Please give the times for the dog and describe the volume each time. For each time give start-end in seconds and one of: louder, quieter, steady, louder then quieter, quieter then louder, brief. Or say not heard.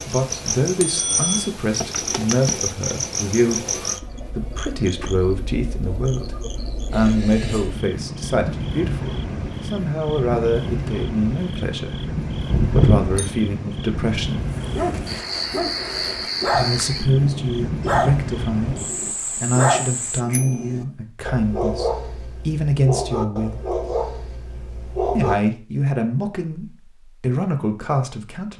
14.5-25.4 steady.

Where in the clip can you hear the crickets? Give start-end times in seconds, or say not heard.
0.0-20.2.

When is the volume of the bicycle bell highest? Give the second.
13 s.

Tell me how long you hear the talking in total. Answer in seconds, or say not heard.
25 s.